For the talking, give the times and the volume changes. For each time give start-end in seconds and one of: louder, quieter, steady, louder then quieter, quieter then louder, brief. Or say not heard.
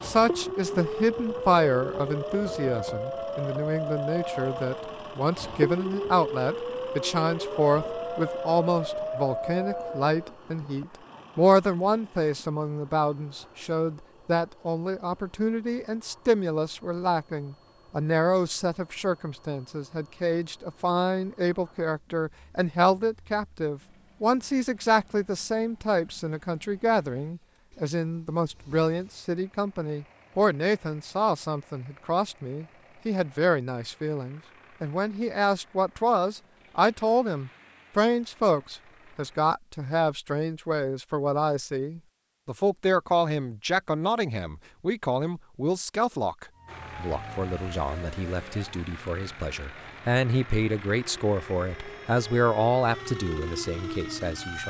0.0-54.6 steady.